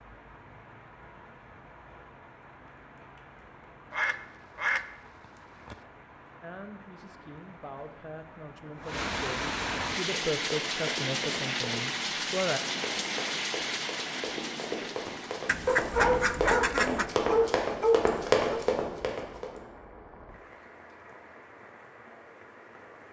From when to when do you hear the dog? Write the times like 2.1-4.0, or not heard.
15.7-18.6.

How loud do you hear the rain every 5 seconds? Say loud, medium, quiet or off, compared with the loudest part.
quiet, medium, loud, quiet, quiet.